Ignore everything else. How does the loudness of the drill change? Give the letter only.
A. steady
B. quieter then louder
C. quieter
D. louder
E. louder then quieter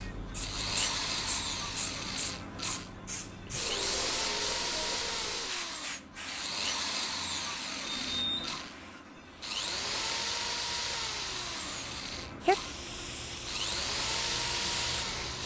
A.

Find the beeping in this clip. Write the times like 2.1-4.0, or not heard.
7.8-8.7.